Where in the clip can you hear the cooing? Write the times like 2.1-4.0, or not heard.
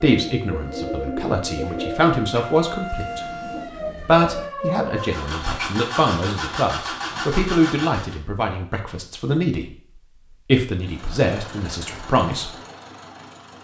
0.1-4.5.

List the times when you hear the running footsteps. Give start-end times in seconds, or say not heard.
not heard.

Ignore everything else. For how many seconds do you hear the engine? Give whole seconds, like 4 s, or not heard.
6 s.